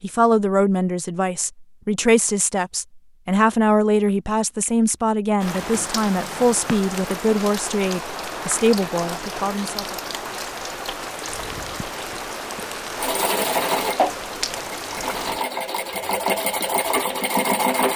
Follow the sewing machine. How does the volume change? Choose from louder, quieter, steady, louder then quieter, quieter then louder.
quieter then louder.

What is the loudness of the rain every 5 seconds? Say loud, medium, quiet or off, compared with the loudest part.
off, loud, loud, medium.